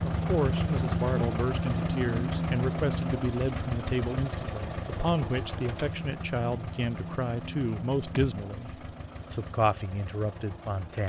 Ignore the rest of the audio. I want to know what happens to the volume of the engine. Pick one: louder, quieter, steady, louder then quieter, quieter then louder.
quieter.